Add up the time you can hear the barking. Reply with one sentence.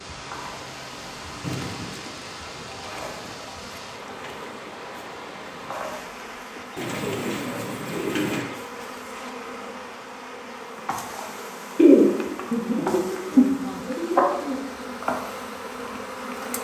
You can't hear the barking here.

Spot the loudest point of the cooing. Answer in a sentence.
The loudest moment of the cooing is at 12 seconds.